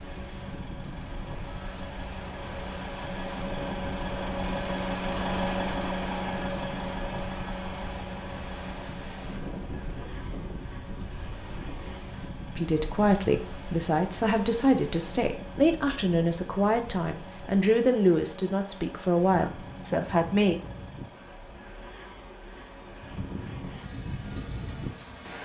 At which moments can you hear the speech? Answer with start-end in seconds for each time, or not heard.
12.6-20.6.